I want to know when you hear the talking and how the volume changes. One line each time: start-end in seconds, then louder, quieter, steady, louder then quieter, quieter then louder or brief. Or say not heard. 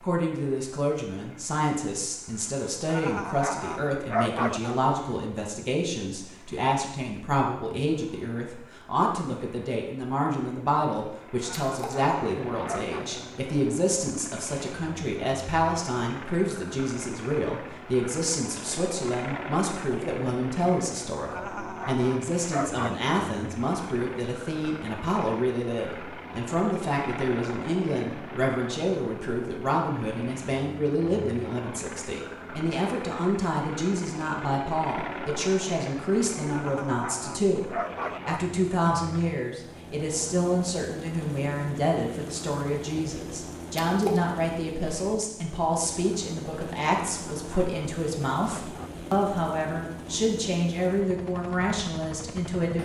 0.0-52.8 steady.